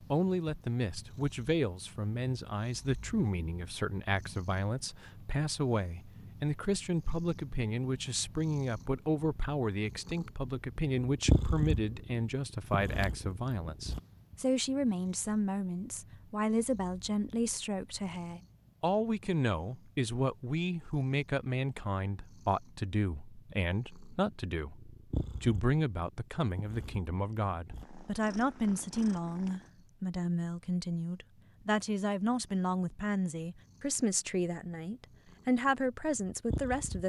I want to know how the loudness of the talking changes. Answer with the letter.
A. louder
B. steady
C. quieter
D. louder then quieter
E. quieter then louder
B.